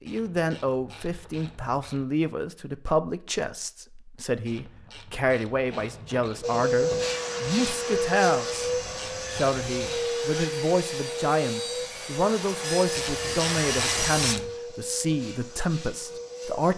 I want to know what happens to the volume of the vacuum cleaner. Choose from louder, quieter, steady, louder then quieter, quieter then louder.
quieter.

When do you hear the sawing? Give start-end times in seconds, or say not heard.
5.6-14.3.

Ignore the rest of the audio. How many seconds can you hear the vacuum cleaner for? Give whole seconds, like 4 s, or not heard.
10 s.